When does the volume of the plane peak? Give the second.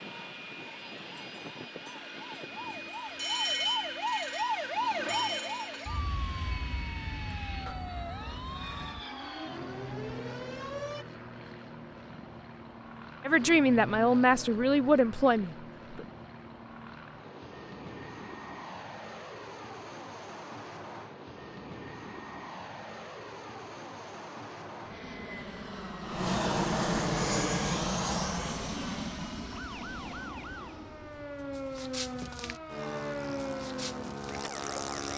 27 s.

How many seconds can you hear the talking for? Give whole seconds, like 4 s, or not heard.
3 s.